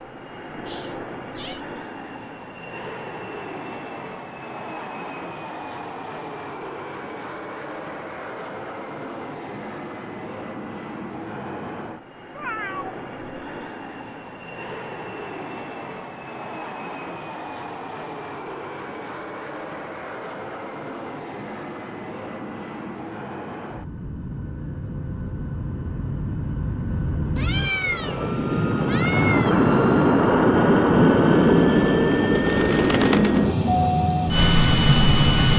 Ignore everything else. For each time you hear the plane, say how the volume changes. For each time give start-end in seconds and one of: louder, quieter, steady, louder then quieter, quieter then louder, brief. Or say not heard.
0.0-35.5 louder.